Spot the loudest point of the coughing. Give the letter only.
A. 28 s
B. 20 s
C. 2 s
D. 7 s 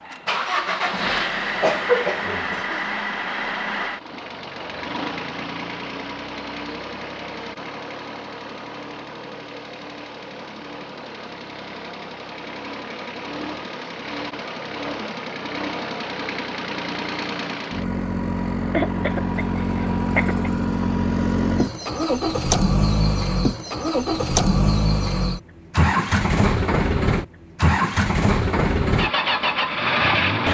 C.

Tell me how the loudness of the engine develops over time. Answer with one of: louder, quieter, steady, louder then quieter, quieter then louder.
quieter then louder.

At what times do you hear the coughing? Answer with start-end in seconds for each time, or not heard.
1.6-2.9, 18.7-20.5.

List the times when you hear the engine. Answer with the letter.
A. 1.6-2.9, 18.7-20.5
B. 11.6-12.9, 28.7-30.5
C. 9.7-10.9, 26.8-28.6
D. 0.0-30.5
D.